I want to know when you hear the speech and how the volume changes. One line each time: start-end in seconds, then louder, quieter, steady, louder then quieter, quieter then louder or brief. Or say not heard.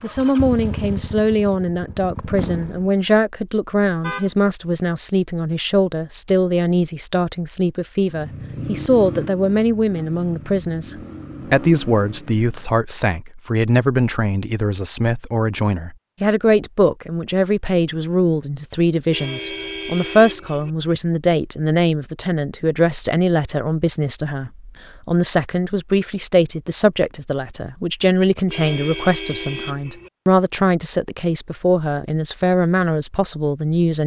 0.0-34.0 steady.